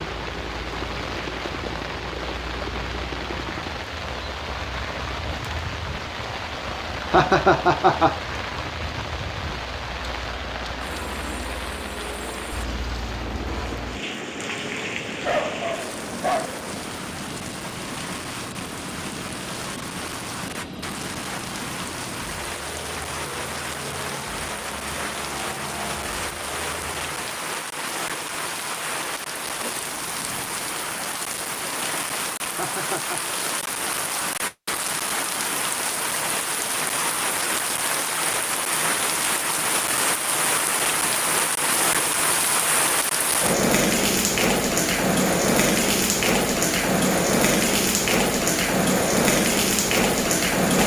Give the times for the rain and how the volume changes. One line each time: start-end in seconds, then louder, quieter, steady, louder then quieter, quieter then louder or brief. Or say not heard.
0.0-50.8 louder.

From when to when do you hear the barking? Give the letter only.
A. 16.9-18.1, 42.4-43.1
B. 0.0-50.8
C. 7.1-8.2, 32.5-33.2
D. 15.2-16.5
D.